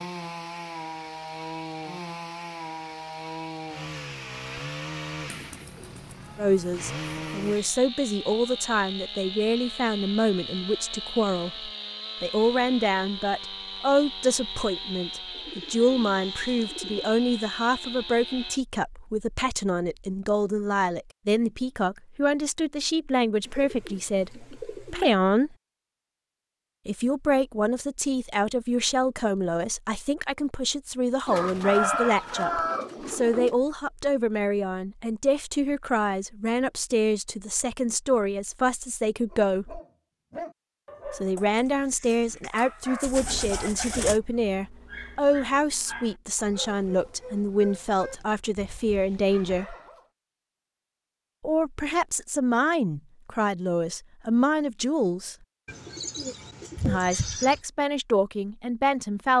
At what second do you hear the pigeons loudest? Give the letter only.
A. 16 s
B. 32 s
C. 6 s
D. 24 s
B.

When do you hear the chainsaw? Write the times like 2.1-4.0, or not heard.
0.0-18.6.